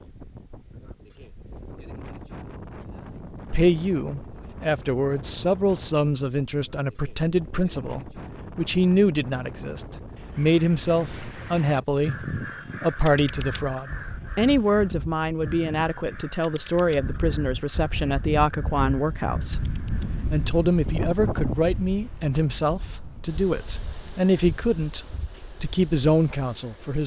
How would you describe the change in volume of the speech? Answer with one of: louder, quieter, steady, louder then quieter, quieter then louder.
steady.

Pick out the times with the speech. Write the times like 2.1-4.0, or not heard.
3.5-19.6, 20.2-27.0.